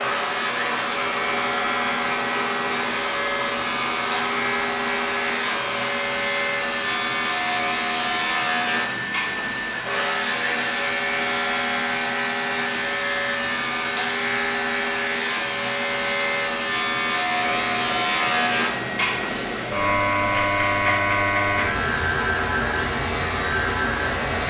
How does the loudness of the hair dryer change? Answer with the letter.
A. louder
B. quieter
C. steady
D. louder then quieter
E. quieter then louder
C.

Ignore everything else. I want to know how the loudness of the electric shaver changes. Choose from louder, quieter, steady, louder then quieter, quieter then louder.
steady.